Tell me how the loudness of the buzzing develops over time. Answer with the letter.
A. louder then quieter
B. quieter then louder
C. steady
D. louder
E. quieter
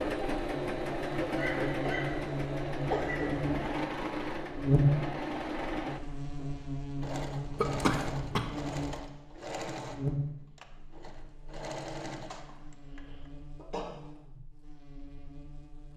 A.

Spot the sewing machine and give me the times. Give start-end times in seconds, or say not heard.
0.0-13.3.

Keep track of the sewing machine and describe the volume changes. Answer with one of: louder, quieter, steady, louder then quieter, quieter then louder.
quieter.